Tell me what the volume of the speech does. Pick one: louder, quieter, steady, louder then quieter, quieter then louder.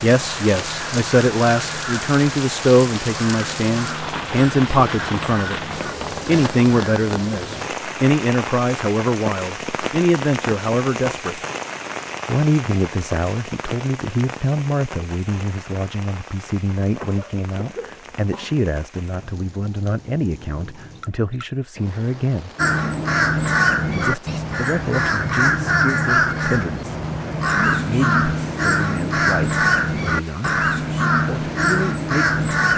quieter.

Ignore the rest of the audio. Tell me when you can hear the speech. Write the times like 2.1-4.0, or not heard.
0.0-5.6, 6.2-11.4, 12.2-22.5, 23.9-32.5.